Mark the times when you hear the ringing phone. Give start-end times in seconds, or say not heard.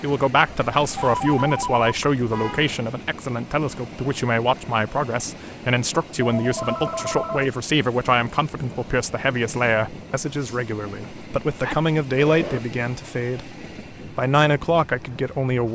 0.7-2.8, 6.2-7.5, 11.6-12.6.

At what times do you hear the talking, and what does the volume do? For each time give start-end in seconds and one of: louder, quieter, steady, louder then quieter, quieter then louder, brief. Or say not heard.
0.0-15.6 steady.